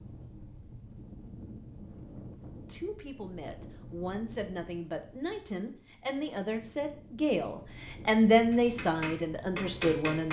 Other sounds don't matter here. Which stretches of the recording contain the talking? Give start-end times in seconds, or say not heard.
2.6-10.2.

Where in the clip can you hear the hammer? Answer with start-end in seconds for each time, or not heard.
8.5-10.2.